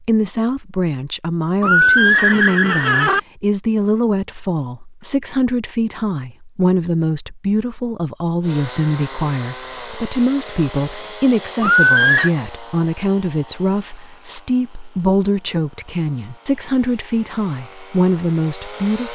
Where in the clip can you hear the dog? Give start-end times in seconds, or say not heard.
not heard.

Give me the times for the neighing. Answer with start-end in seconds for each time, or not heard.
1.6-3.2, 11.6-12.3.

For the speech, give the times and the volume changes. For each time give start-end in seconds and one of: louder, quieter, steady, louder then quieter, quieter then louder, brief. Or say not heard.
0.0-19.1 steady.